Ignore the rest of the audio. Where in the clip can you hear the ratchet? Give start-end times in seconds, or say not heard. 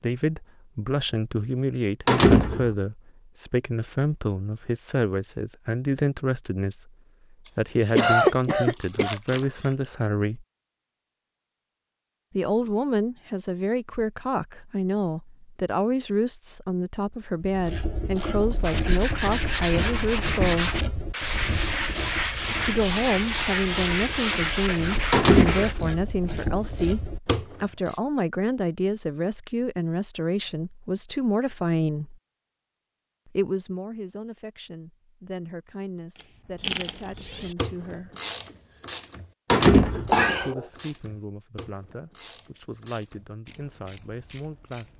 17.4-28.0, 36.1-44.9.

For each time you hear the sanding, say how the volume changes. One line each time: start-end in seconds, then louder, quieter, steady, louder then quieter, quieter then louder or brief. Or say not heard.
18.6-25.8 steady.